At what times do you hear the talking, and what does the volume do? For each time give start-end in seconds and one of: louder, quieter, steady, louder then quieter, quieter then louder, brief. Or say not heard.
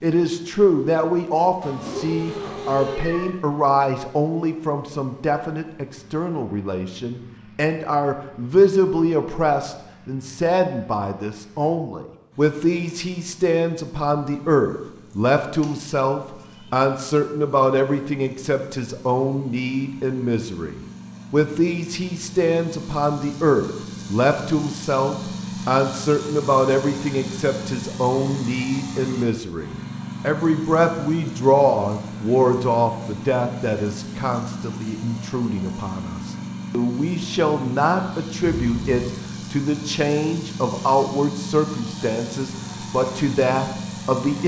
0.0-44.4 steady.